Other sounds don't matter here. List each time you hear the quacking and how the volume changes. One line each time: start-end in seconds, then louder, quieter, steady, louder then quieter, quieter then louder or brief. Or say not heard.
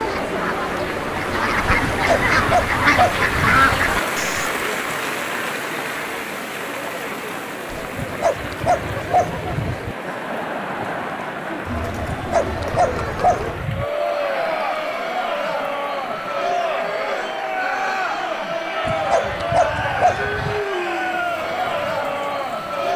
0.0-4.5 louder.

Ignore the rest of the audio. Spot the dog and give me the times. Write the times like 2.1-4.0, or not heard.
1.9-3.6, 8.0-9.9, 12.1-13.8, 18.9-20.6.